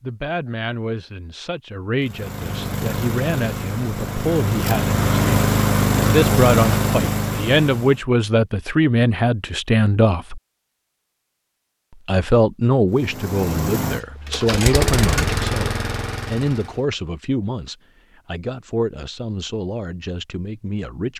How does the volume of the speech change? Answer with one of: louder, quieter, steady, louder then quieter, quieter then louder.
louder then quieter.